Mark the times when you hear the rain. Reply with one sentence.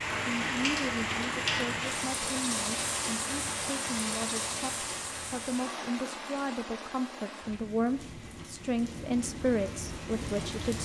You can hear the rain from 0.0 to 10.8 s.